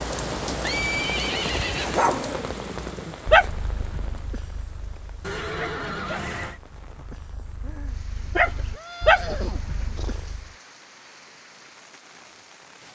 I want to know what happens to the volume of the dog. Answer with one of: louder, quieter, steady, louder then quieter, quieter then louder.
quieter then louder.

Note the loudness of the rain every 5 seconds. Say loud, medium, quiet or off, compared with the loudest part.
loud, quiet, quiet.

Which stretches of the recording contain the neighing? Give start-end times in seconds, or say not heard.
0.6-2.1, 5.2-6.6, 8.7-10.3.